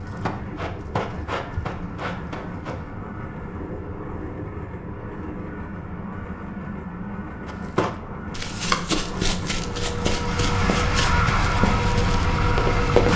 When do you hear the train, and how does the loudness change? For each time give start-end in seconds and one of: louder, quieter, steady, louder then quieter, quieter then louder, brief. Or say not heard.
0.0-13.1 louder.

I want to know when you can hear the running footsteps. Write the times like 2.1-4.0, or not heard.
0.0-2.9, 7.5-13.1.